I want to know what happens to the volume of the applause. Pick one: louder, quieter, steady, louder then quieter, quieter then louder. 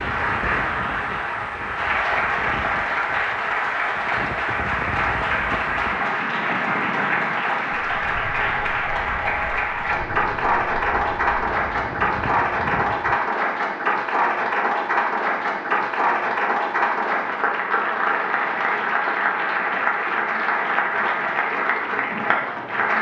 steady.